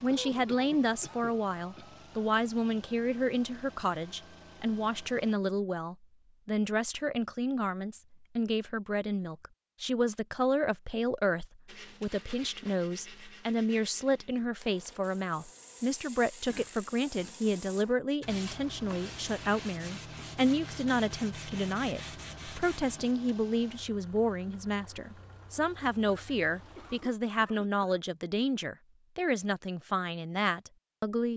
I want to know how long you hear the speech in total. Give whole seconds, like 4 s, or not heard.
31 s.